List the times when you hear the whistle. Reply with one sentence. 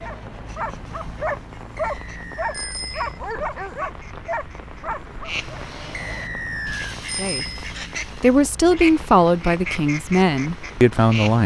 The whistle can be heard from 1.8 to 2.8 s and from 5.9 to 7.0 s.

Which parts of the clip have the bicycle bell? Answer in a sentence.
The bicycle bell can be heard from 2.5 to 3.2 s and from 7.0 to 7.5 s.